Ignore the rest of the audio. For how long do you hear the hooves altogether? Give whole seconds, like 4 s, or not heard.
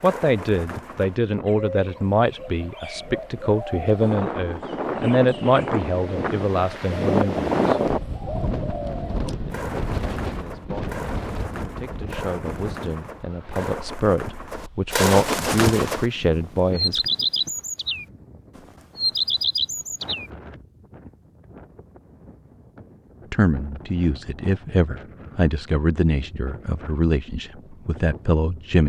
not heard.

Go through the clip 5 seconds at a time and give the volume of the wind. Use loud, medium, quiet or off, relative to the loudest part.
medium, loud, medium, quiet, quiet, quiet.